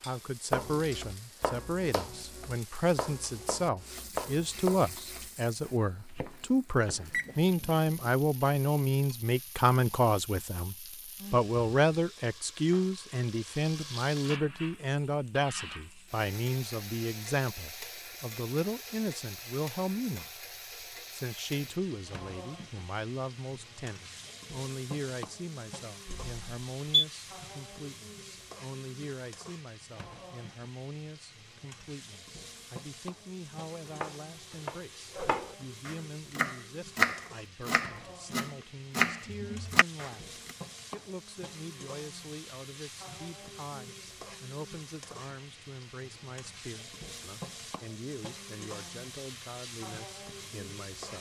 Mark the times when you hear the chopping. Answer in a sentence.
You can hear the chopping from 0.5 to 7.2 s and from 33.9 to 40.5 s.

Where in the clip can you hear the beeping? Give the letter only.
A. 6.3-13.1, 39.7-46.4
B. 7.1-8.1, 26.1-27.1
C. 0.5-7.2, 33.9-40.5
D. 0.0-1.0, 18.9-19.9
B.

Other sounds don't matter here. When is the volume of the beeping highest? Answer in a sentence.
The loudest moment of the beeping is at 27 seconds.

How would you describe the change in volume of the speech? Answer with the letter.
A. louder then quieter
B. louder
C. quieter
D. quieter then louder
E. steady
C.